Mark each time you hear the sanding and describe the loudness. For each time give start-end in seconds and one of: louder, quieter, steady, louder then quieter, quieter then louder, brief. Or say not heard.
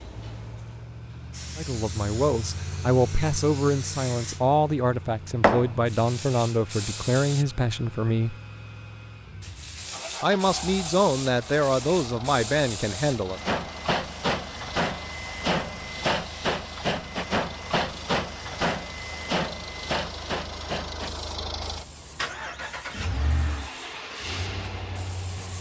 not heard.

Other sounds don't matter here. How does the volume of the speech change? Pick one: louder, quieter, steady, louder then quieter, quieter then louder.
steady.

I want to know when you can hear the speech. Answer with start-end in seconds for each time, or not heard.
1.6-8.3, 10.2-13.4.